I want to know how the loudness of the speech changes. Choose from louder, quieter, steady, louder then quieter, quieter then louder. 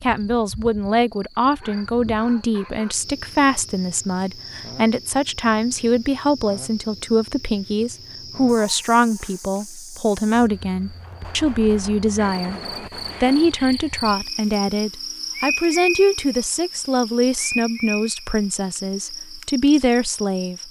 steady.